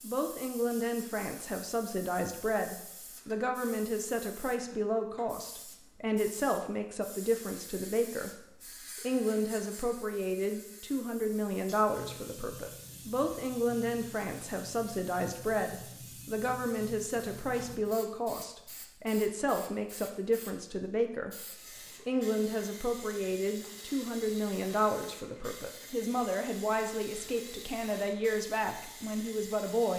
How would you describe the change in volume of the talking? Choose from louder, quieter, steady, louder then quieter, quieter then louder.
steady.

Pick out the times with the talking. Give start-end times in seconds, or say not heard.
0.0-29.9.